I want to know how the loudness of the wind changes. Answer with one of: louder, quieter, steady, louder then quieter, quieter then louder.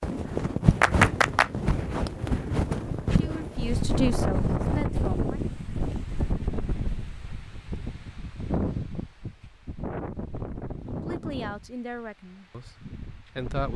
quieter.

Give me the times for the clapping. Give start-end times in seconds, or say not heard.
0.8-1.5.